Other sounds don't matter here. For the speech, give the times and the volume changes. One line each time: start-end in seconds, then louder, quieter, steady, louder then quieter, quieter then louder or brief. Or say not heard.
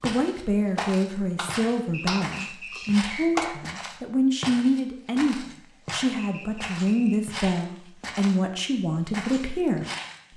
0.0-10.3 steady.